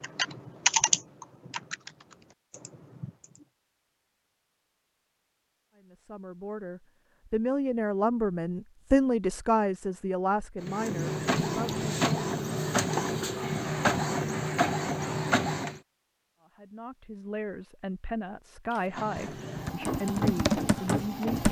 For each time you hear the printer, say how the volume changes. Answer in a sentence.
You can hear the printer from 10.6 to 15.8 s, at a steady volume; and briefly from 18.9 to 21.4 s.